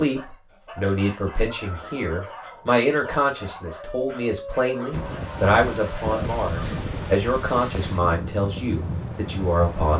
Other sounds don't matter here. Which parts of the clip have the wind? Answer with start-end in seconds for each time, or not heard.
4.9-9.9.